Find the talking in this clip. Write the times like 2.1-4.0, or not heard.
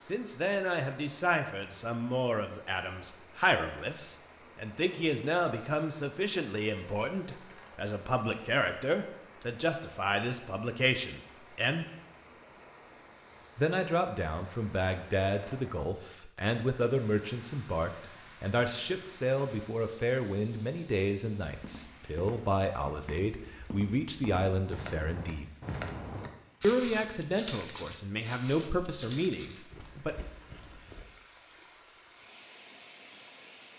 0.0-11.8, 13.6-25.5, 26.6-30.1.